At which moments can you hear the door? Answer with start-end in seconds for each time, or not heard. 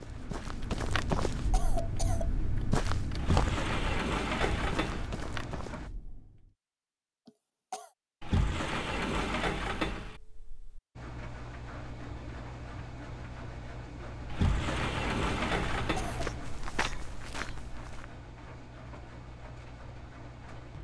3.1-5.0, 8.2-10.8, 14.3-16.2.